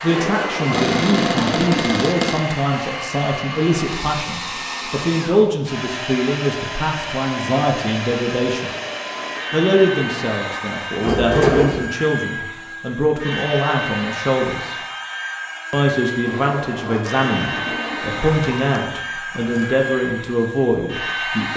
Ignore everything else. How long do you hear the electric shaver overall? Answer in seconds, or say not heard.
not heard.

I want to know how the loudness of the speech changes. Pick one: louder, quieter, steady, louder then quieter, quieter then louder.
steady.